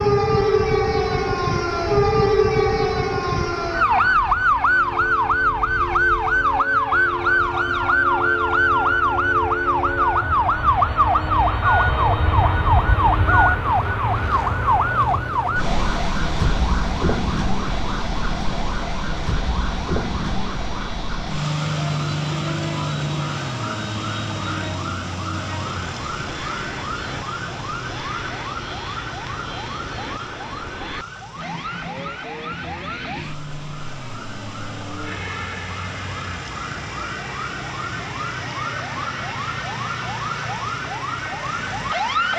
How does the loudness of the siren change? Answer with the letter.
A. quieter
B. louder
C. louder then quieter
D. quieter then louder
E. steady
A.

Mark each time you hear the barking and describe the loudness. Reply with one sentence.
The barking can't be heard in this clip.